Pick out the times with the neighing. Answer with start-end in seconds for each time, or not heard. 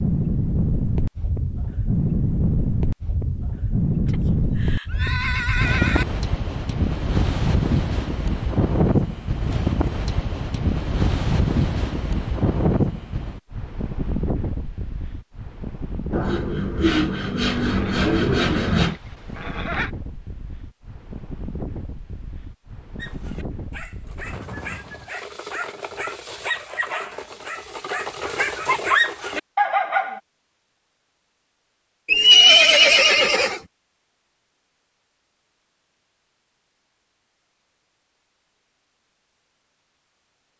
4.0-6.0, 17.5-19.9, 32.0-33.6.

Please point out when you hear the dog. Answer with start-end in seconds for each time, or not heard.
22.9-30.2.